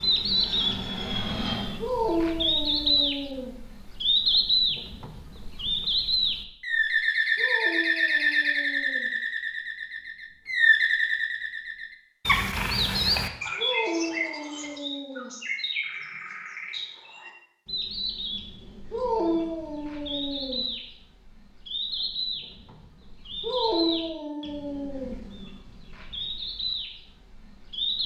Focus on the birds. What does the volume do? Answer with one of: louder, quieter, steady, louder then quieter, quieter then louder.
quieter.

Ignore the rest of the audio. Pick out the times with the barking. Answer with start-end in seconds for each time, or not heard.
1.8-3.5, 7.3-9.1, 13.6-15.3, 18.9-20.6, 23.4-25.1.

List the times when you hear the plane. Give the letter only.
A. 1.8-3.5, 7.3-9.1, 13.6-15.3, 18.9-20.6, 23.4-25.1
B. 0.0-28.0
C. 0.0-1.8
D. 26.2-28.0
C.